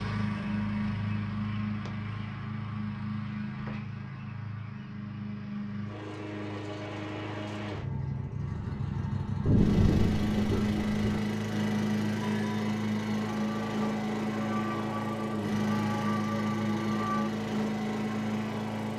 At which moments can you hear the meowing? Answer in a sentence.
The meowing can't be heard in this clip.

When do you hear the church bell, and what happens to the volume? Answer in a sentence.
The church bell can be heard from 12.2 to 17.3 s, getting louder.